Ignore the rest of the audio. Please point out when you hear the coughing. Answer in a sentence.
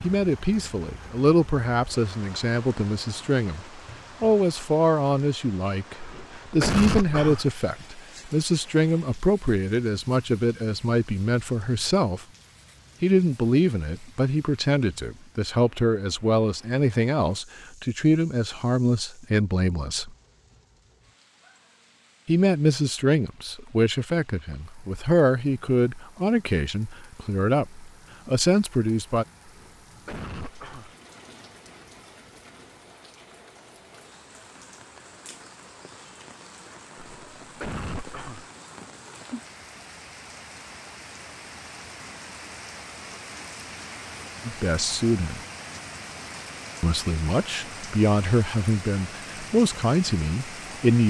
The coughing can be heard from 6.0 to 7.5 s, from 29.4 to 30.9 s and from 37.0 to 38.5 s.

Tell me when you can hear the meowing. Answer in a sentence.
The meowing can't be heard in this clip.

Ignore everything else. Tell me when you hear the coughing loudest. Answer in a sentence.
The volume of the coughing peaks at 7 seconds.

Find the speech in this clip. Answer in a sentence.
You can hear the speech from 0.0 to 12.2 s, from 13.0 to 20.1 s, from 22.2 to 29.2 s, from 44.5 to 45.4 s and from 46.8 to 51.0 s.